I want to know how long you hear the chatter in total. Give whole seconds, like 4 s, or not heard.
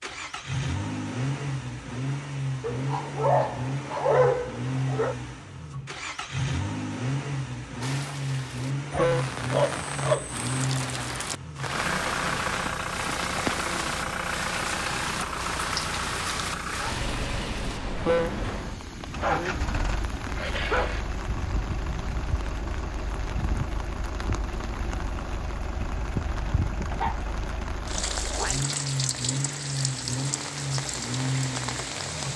not heard.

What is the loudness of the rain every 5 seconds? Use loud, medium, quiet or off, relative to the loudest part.
off, loud, loud, loud, medium, loud, loud.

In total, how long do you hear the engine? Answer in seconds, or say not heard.
32 s.